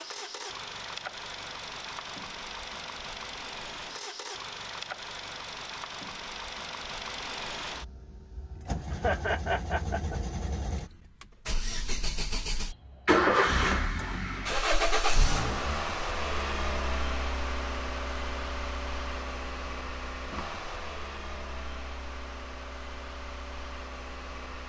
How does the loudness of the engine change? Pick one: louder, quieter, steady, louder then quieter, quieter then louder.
louder then quieter.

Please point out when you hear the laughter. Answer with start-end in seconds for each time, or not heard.
8.9-10.2.